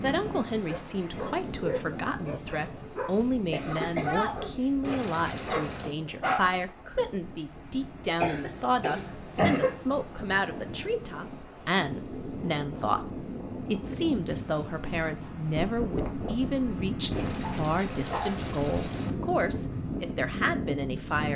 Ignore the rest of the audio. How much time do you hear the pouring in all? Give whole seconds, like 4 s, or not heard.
3 s.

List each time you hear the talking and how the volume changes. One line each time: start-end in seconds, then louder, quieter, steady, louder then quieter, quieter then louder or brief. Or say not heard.
0.0-21.3 steady.